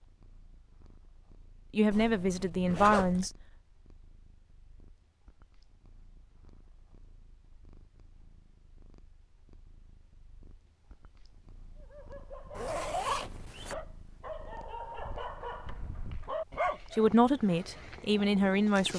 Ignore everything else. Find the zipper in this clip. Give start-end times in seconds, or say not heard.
1.9-3.2, 12.6-13.8.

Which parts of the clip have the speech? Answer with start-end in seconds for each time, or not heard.
1.7-3.3, 16.9-18.9.